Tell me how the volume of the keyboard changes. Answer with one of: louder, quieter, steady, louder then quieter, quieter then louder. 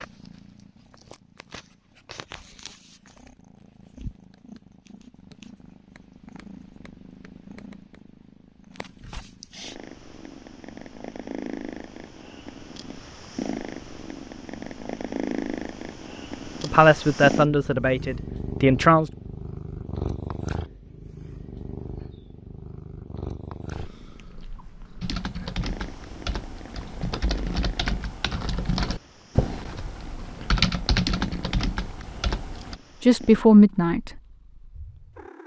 louder.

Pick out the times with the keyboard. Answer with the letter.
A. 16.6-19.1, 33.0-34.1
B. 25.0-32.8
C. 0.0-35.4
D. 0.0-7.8
B.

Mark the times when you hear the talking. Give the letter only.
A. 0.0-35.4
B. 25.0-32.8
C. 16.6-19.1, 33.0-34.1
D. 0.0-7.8
C.